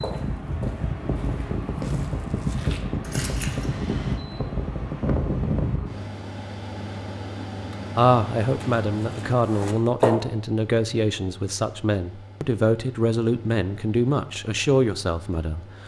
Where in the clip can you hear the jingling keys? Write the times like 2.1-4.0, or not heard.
3.0-4.2.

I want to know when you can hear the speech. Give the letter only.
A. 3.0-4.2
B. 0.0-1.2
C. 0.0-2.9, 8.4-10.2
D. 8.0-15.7
D.